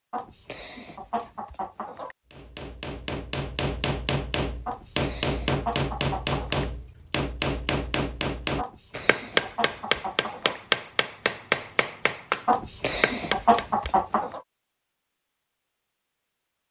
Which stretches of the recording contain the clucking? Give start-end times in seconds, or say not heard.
0.1-2.1, 4.7-6.7, 8.6-10.6, 12.4-14.4.